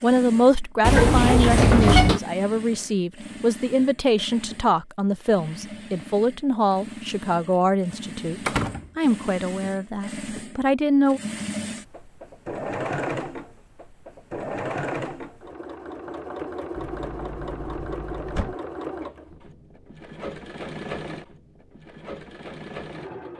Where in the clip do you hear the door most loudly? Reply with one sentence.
The volume of the door peaks at 2 seconds.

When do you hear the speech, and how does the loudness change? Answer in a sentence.
You can hear the speech from 0.0 to 11.2 s, at a steady volume.